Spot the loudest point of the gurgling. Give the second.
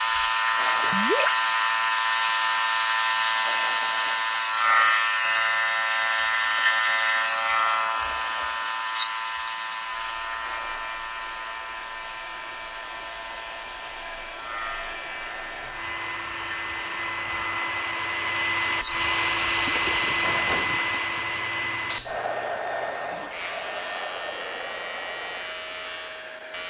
1 s.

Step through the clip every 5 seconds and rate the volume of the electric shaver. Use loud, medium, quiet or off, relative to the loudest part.
loud, loud, quiet, quiet, quiet, quiet.